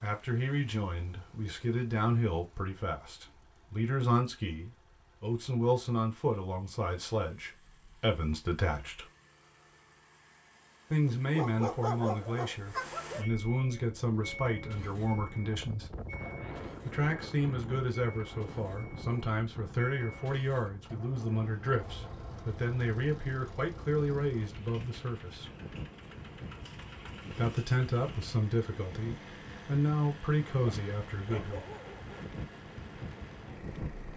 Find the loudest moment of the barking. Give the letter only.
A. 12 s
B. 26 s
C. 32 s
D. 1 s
A.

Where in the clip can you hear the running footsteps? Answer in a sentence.
You can't hear the running footsteps here.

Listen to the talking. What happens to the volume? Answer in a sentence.
The loudness of the talking stays about the same.